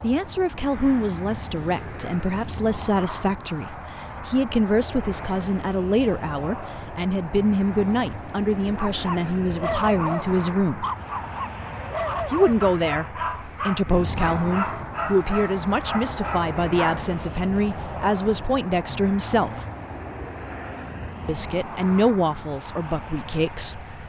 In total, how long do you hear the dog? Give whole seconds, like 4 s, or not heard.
8 s.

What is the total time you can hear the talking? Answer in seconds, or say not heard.
21 s.